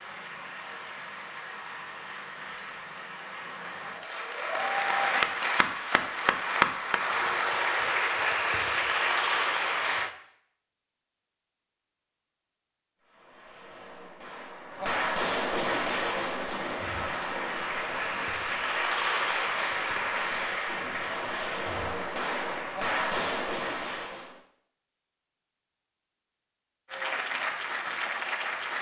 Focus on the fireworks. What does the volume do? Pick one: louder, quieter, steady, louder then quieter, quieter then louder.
quieter then louder.